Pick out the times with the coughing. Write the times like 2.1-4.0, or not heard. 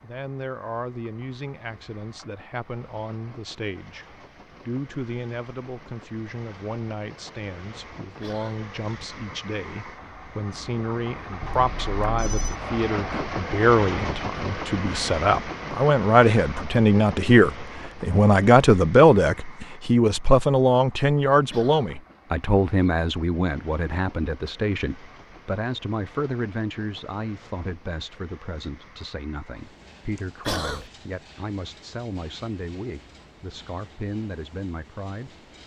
8.2-8.7, 21.5-21.9, 30.4-30.9.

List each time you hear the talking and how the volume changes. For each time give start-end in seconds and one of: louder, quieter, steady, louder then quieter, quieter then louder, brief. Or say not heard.
0.0-35.6 louder then quieter.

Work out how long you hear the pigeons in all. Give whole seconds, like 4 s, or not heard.
not heard.